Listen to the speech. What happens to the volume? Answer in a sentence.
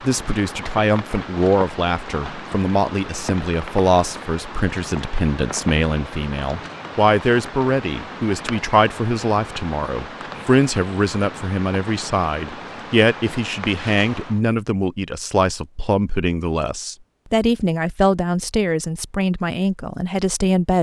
The volume of the speech stays about the same.